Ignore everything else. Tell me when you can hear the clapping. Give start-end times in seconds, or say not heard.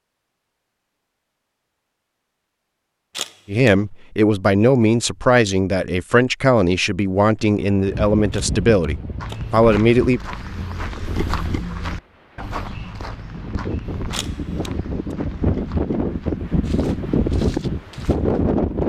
not heard.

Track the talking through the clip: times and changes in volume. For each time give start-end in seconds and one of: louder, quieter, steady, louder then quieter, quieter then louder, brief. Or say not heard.
3.5-10.2 steady.